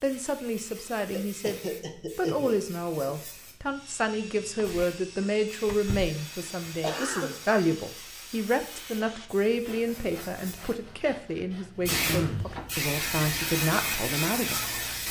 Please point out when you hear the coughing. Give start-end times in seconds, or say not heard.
1.1-3.1, 6.7-7.5, 11.8-12.5.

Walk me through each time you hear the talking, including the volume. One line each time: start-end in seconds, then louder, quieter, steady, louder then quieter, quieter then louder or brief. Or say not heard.
0.0-14.6 steady.